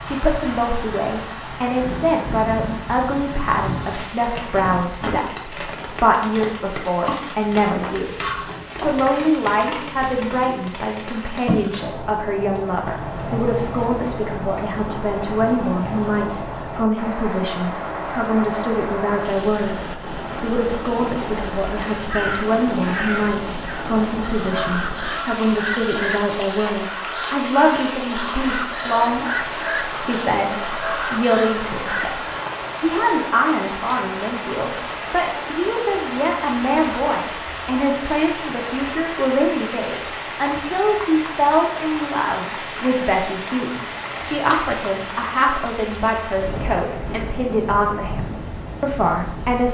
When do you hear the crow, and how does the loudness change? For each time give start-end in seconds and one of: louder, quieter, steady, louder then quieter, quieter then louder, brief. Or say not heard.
21.6-32.4 steady.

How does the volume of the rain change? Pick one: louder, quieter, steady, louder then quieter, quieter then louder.
steady.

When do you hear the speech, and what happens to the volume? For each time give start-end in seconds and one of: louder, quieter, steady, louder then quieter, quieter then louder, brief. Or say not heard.
0.1-49.7 steady.